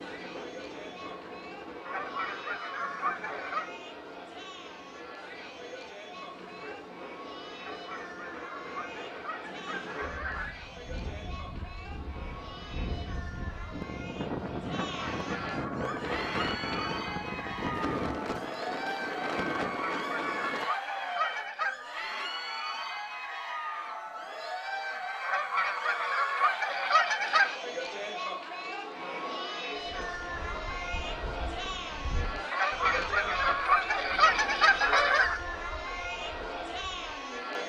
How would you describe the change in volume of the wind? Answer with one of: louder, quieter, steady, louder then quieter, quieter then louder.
louder.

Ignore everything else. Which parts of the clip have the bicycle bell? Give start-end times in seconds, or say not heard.
not heard.